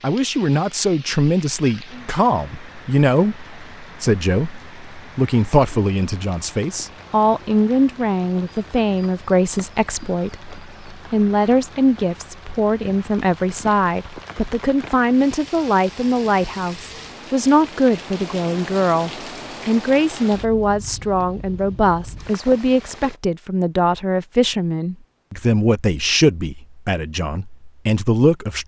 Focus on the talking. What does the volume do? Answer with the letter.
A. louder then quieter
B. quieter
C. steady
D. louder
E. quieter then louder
C.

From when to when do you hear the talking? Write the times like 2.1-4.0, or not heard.
0.0-28.6.